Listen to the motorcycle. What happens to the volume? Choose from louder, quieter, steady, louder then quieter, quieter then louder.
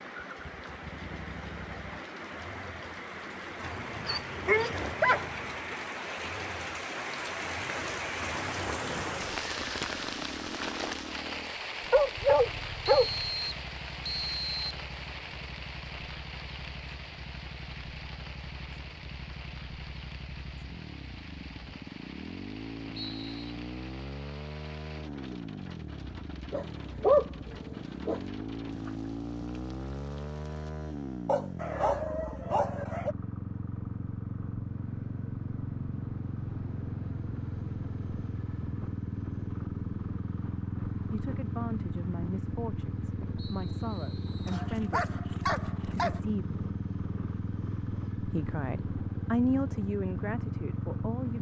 louder.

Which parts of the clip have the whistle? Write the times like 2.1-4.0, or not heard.
12.8-14.8, 22.9-23.6, 43.4-44.6.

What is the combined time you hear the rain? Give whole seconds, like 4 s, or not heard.
31 s.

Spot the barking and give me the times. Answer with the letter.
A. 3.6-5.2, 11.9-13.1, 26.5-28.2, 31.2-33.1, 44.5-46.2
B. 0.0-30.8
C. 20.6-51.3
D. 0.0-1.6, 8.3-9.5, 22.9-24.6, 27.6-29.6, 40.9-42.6
A.